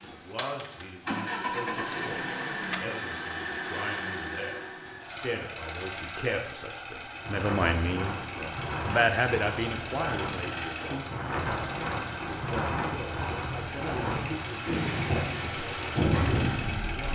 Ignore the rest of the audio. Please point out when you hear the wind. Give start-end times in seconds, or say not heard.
7.2-17.1.